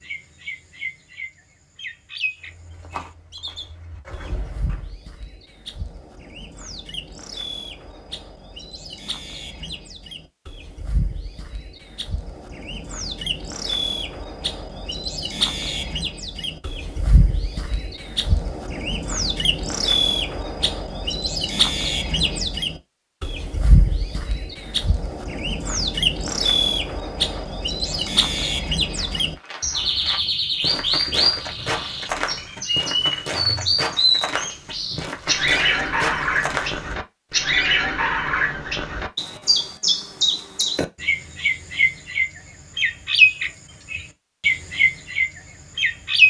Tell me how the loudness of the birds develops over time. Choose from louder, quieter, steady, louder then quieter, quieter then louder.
louder.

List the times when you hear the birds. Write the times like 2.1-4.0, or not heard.
0.0-46.2.